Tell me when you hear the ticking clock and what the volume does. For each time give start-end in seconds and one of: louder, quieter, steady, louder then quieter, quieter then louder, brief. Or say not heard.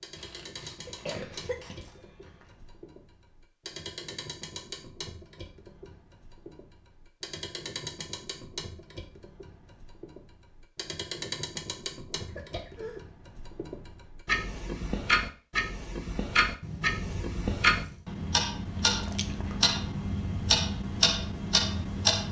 0.0-22.2 louder.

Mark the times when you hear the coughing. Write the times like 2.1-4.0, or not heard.
0.8-2.5, 12.1-13.0.